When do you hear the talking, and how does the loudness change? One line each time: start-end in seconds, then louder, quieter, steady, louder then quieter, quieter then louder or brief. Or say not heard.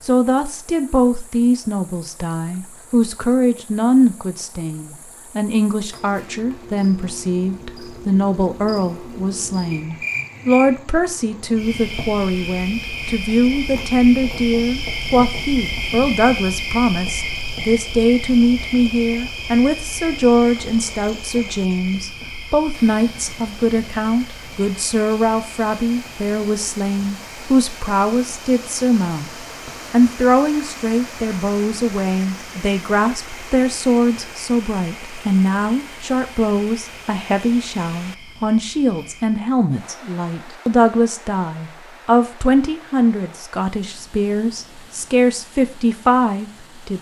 0.1-29.3 steady
29.9-46.9 steady.